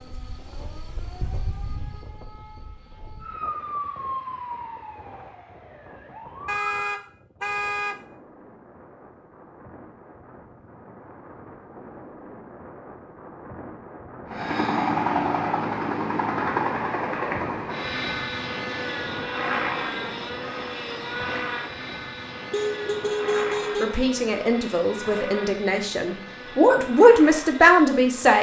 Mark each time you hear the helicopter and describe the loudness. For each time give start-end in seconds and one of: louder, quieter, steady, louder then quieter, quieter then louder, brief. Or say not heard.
14.2-28.3 quieter.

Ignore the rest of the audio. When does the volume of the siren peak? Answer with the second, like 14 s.
4 s.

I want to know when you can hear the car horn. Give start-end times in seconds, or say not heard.
6.5-8.0, 22.5-23.9.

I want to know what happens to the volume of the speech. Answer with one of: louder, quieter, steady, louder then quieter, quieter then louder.
louder.